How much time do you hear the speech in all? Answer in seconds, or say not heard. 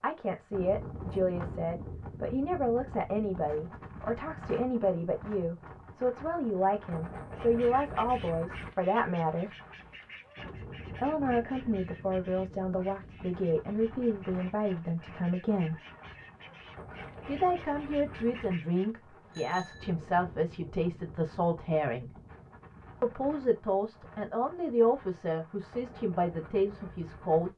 24 s.